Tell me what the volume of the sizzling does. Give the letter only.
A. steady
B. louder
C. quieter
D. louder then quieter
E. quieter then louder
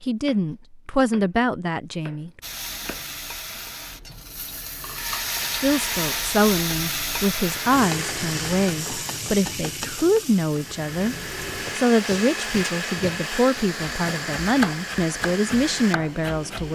D.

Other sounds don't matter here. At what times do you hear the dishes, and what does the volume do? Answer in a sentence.
The dishes can't be heard in this clip.